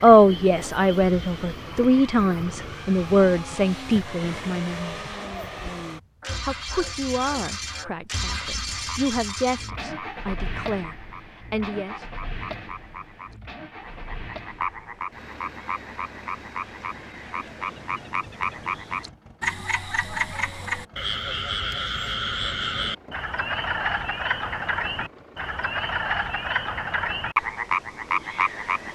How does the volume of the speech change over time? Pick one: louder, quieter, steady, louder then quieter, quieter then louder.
quieter.